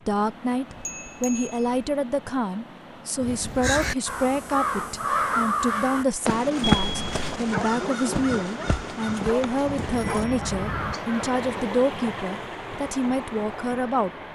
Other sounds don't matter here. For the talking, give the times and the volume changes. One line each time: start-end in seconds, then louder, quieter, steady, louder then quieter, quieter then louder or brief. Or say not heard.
0.1-14.1 steady.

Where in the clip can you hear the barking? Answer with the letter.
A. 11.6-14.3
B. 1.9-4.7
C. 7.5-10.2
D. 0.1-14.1
C.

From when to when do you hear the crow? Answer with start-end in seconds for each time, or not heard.
3.2-11.2.